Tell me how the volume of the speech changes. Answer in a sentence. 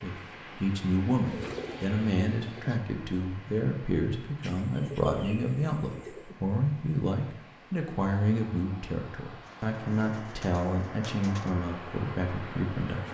The volume of the speech stays about the same.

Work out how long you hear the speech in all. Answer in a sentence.
The speech can be heard for 13 seconds in total.